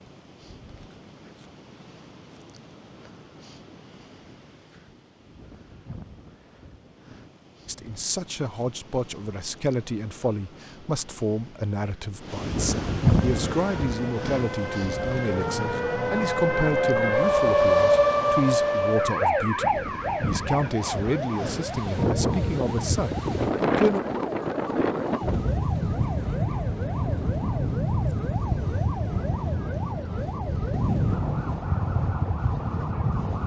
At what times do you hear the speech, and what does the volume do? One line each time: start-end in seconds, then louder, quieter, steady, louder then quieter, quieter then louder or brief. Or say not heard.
7.7-24.0 steady.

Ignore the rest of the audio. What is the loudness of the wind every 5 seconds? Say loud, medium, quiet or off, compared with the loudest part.
quiet, quiet, loud, quiet, loud, loud, loud.